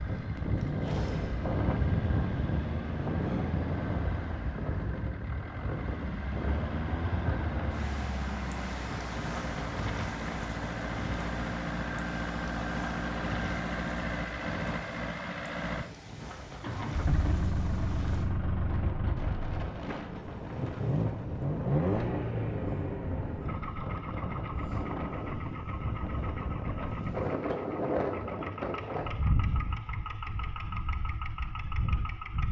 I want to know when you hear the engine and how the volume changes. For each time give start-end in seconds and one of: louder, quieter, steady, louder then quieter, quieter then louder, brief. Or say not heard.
0.0-32.4 louder then quieter.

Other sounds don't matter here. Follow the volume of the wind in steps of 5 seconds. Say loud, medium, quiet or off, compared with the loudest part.
loud, medium, medium, medium, medium, loud, medium.